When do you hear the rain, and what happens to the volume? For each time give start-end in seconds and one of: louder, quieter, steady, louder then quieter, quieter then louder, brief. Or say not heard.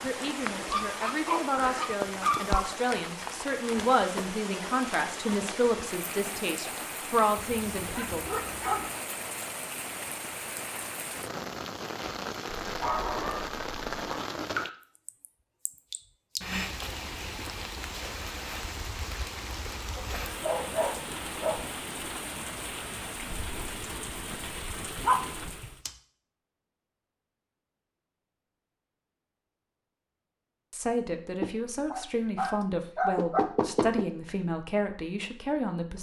0.0-25.8 steady.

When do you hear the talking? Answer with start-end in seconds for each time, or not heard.
0.0-8.2, 30.7-35.9.